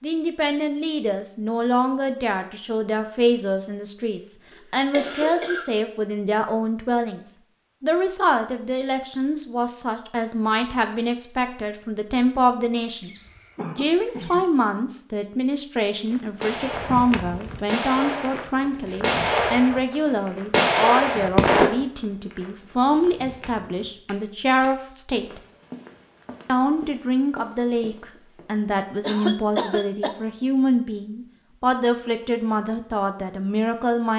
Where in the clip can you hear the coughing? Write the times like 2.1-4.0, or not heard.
4.5-5.7, 13.0-14.4, 29.0-30.1.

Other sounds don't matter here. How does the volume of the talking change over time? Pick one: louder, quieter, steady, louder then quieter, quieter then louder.
steady.